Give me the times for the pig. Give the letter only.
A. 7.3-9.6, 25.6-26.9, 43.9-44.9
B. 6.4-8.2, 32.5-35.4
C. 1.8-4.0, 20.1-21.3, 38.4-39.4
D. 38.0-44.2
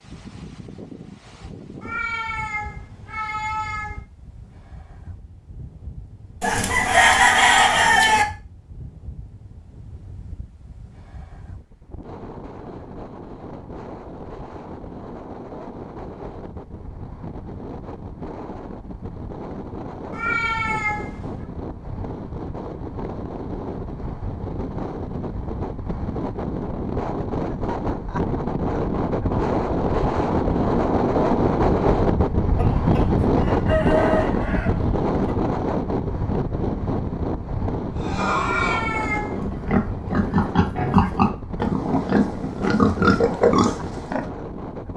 D.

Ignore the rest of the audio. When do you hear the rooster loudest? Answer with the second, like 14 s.
7 s.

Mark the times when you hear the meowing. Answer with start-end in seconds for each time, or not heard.
1.8-4.0, 20.1-21.3, 38.4-39.4.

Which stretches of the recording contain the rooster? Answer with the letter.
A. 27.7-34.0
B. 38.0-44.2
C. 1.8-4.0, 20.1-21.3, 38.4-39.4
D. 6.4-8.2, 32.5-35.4
D.